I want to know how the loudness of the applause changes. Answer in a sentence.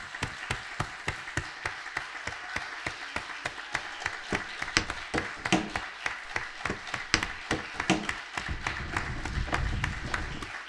The loudness of the applause stays about the same.